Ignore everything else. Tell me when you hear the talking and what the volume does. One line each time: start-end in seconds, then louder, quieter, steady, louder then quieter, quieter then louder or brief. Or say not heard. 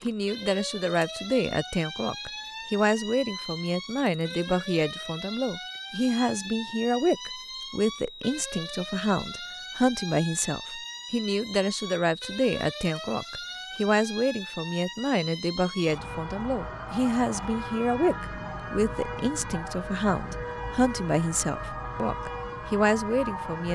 0.0-23.7 steady.